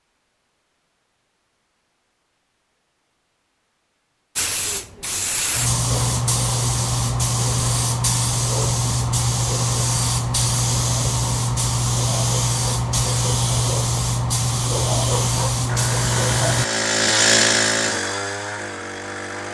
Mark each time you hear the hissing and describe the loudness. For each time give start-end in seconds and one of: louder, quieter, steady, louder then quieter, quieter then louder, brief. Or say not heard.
4.3-16.6 steady.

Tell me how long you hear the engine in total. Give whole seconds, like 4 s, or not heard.
4 s.